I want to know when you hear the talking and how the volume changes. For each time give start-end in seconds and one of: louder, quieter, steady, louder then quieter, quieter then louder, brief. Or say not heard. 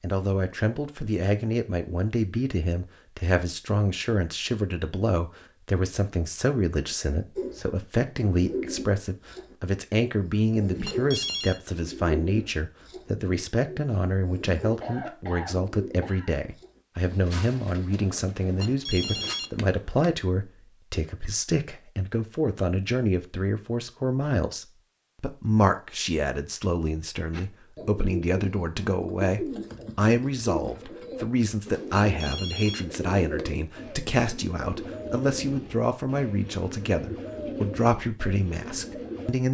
0.0-39.4 steady.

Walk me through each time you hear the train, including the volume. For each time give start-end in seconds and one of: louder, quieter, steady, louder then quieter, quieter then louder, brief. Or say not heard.
not heard.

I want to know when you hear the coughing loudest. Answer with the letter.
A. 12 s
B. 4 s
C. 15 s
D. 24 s
C.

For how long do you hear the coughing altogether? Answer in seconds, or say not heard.
2 s.